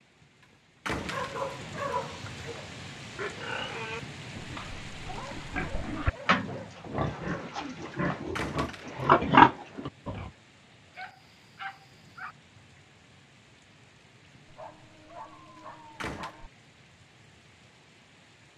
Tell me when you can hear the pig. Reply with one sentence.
The pig can be heard from 2.0 to 10.3 s.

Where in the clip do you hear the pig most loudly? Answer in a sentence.
The loudest moment of the pig is at 9 seconds.